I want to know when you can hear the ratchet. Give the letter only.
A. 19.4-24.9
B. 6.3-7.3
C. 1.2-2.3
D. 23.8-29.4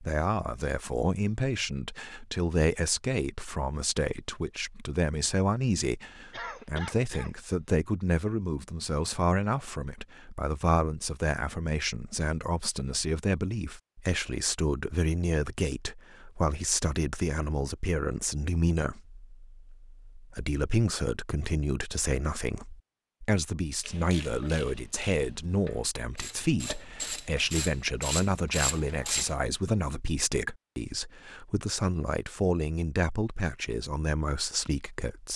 D.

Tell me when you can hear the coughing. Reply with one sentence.
You can hear the coughing from 6.3 to 7.3 s.